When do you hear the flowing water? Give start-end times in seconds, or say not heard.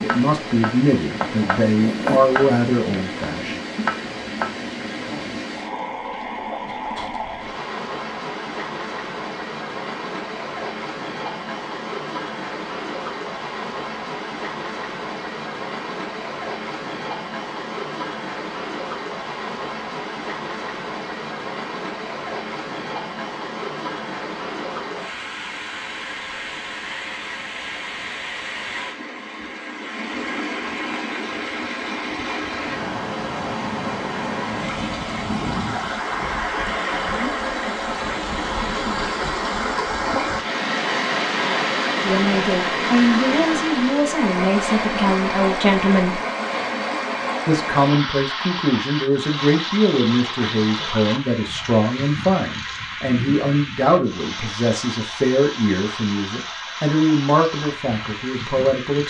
0.0-59.0.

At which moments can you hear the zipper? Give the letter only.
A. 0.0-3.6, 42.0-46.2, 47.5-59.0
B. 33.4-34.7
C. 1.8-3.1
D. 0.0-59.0
C.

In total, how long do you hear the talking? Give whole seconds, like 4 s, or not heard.
19 s.